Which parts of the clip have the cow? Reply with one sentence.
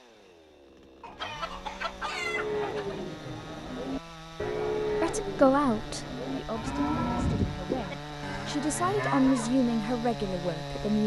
You can hear the cow from 2.0 to 9.6 s.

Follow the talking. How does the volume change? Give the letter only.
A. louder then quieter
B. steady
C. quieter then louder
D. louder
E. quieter
C.